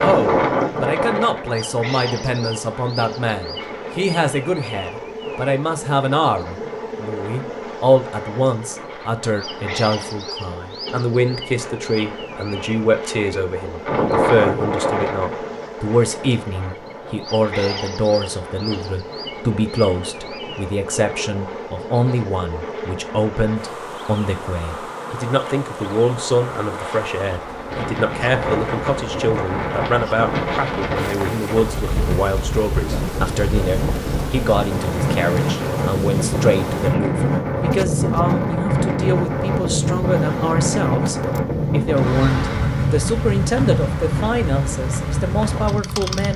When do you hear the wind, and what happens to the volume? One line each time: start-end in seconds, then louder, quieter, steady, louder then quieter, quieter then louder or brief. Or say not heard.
0.0-46.3 quieter then louder.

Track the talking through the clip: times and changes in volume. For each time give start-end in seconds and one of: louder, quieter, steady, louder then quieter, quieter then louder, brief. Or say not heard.
0.0-46.3 steady.